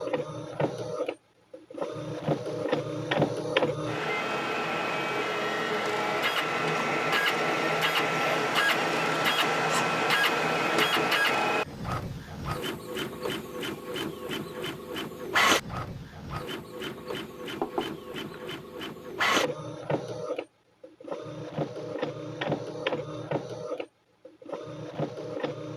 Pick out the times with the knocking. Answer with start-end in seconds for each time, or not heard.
17.6-18.4.